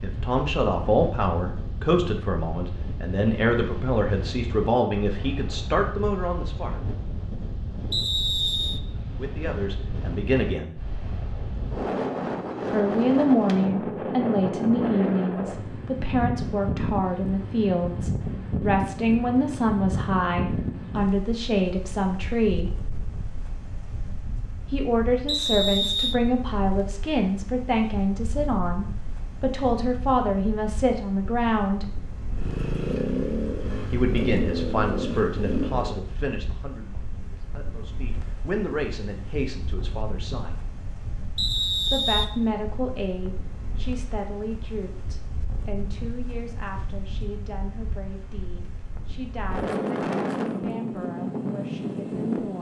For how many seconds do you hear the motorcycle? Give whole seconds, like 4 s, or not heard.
4 s.